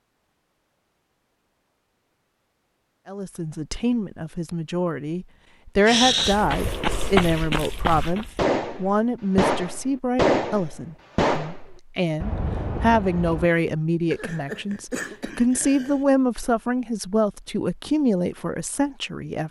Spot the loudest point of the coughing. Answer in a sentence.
The volume of the coughing peaks at 6 seconds.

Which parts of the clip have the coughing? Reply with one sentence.
The coughing can be heard from 5.8 to 6.4 s and from 14.1 to 16.0 s.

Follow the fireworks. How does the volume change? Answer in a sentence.
The volume of the fireworks goes up, then down.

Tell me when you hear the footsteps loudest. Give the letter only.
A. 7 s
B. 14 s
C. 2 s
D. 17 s
A.